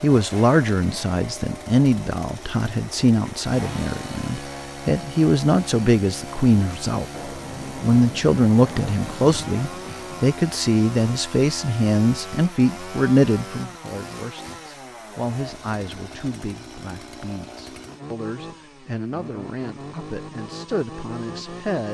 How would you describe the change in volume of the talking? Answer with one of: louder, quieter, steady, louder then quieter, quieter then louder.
quieter.